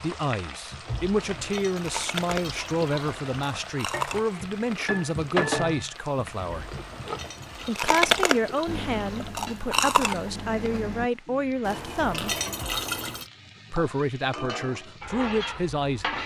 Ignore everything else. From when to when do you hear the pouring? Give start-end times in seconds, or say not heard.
0.8-3.4, 6.5-9.3, 11.6-13.3.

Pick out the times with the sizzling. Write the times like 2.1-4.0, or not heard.
0.0-16.2.